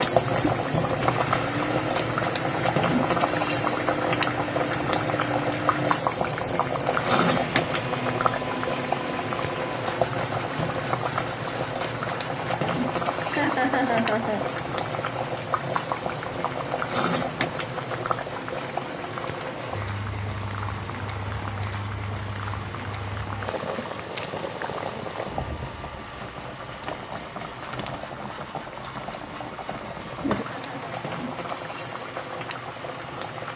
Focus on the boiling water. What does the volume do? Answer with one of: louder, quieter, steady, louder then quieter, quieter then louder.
quieter.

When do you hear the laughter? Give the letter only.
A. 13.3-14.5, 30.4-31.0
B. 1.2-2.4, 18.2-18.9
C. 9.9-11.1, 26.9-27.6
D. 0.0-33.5
A.